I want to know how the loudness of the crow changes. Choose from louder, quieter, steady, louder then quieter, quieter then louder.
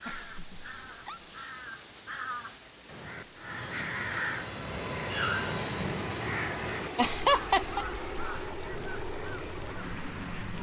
louder then quieter.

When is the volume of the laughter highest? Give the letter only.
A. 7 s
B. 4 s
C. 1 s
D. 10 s
A.